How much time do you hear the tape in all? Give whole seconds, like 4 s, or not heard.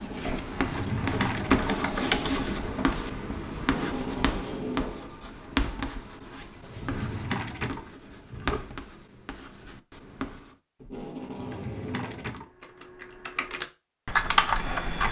3 s.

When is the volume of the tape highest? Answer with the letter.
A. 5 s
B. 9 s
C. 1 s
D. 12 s
A.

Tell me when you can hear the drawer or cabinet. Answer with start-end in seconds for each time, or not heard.
0.6-1.8, 6.5-8.6, 11.3-12.4.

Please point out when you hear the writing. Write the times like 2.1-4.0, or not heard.
0.0-10.6.